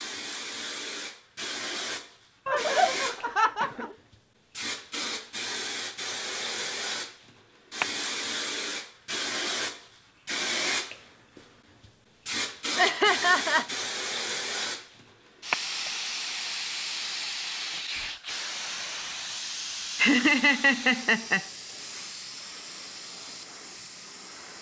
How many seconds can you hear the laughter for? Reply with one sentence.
You can hear the laughter for 4 seconds altogether.